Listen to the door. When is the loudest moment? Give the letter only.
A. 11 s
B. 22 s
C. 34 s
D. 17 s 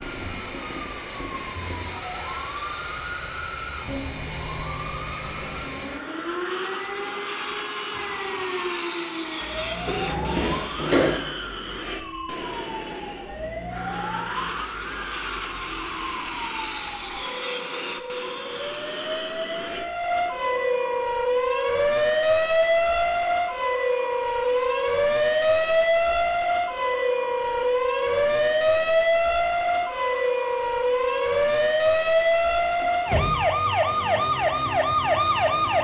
A.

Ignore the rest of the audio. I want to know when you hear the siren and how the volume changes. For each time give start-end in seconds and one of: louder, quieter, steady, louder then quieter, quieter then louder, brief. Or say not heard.
0.0-35.8 louder.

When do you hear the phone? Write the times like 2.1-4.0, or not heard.
not heard.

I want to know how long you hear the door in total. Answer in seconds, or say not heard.
2 s.